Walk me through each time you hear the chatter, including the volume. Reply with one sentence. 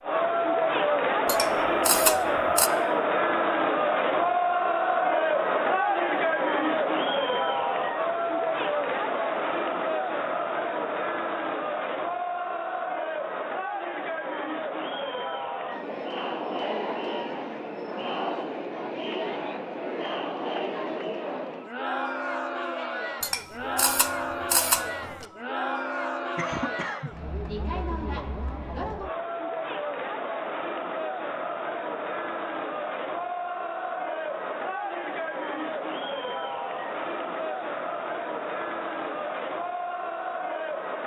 You can hear the chatter from 0.0 to 41.0 s, getting quieter.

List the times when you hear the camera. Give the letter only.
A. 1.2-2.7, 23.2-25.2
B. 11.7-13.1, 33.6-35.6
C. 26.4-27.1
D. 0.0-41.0
A.